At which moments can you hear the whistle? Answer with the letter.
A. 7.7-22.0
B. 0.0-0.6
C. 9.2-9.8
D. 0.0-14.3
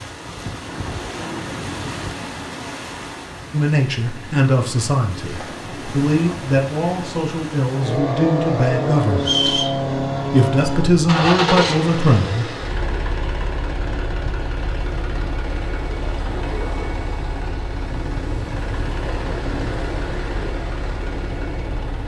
C.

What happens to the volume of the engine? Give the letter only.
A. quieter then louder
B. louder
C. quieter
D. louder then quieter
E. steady
C.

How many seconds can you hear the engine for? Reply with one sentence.
You can hear the engine for 14 seconds altogether.